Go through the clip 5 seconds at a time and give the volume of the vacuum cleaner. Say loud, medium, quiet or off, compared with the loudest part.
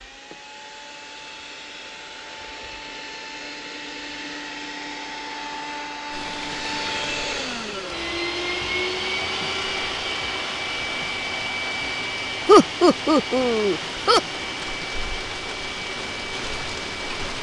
medium, loud, loud, medium.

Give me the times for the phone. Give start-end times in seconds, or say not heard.
not heard.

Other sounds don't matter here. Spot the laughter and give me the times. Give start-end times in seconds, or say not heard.
12.4-14.2.